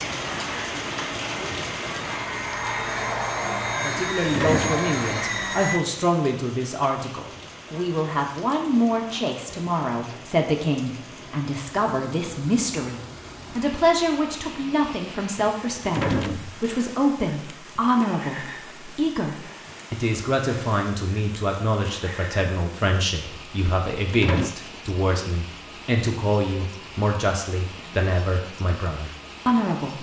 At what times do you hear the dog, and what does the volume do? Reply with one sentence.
The dog can't be heard in this clip.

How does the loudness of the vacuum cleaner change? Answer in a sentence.
The loudness of the vacuum cleaner goes up.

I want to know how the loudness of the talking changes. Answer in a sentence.
The volume of the talking stays about the same.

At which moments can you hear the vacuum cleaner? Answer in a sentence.
You can hear the vacuum cleaner from 0.0 to 5.8 s.